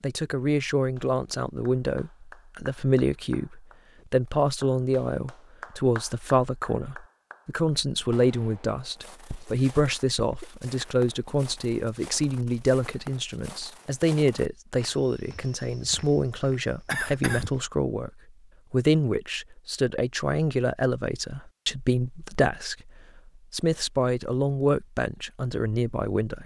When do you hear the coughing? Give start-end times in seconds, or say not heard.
9.3-10.4, 16.9-17.5.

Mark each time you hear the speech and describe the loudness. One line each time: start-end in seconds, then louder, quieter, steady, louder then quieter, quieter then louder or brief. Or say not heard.
0.0-18.1 steady
18.7-26.4 steady.